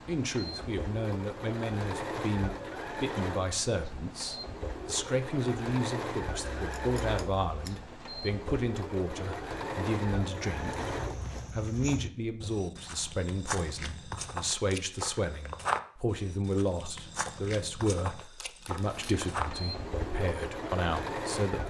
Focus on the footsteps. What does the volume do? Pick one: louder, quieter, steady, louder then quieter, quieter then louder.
louder then quieter.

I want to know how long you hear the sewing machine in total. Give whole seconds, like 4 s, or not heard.
14 s.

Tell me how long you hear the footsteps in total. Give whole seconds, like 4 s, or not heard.
9 s.